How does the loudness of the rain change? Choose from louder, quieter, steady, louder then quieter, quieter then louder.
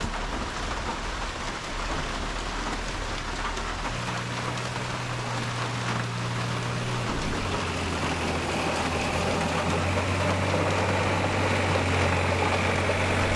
steady.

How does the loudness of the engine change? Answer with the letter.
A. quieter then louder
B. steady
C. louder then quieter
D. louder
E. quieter
D.